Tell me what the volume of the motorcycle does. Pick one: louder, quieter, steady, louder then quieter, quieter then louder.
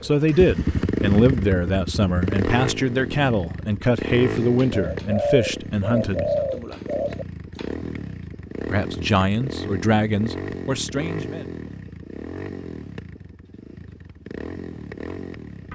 quieter.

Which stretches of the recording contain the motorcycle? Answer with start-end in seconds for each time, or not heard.
0.0-15.7.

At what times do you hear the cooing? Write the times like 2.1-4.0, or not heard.
4.3-7.7.